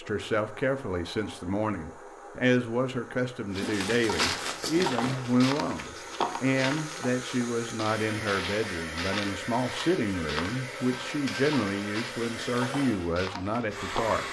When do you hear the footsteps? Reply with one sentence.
The footsteps can be heard from 3.5 to 14.2 s.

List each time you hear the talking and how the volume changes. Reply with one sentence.
You can hear the talking from 0.0 to 14.2 s, at a steady volume.